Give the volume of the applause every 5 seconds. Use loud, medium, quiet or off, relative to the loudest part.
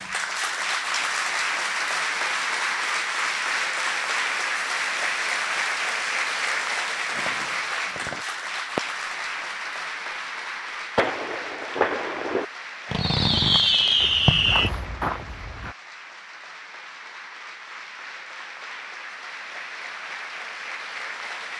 loud, loud, medium, quiet, medium.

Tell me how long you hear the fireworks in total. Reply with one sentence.
You can hear the fireworks for 6 seconds altogether.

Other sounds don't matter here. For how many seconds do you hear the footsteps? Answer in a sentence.
The footsteps can be heard for 2 seconds in total.